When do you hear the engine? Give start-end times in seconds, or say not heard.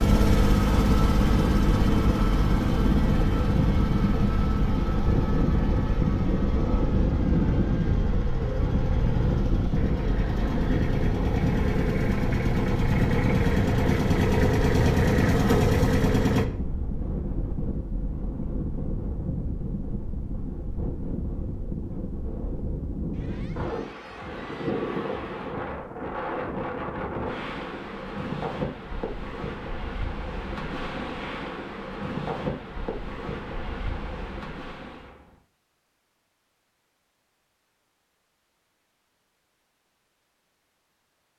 0.0-16.4.